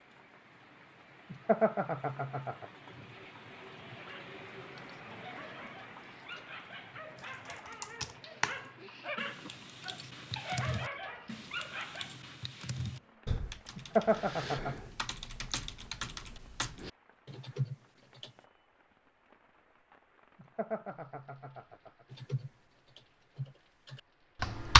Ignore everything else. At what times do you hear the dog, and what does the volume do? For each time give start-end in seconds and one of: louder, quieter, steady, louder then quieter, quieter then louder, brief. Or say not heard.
4.0-12.2 louder.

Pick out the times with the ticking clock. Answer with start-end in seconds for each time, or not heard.
not heard.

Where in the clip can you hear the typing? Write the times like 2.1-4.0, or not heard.
7.2-18.3, 22.1-24.7.